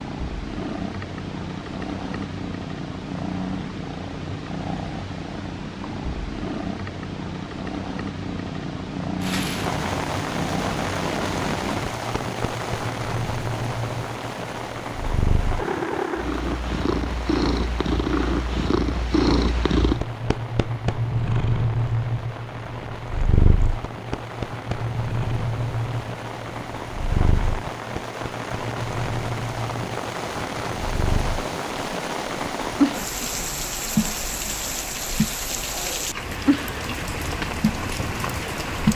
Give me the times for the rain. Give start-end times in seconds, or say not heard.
9.2-38.9.